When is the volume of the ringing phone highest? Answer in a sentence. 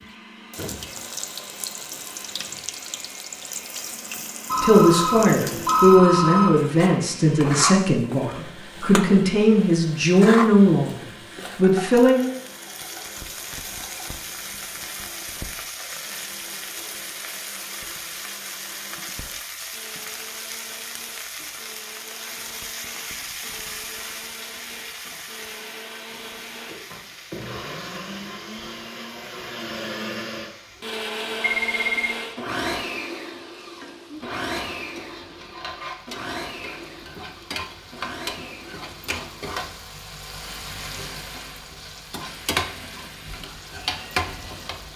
The volume of the ringing phone peaks at 6 seconds.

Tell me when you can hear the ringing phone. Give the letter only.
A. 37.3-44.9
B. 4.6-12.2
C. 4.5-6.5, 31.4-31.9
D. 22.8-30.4
C.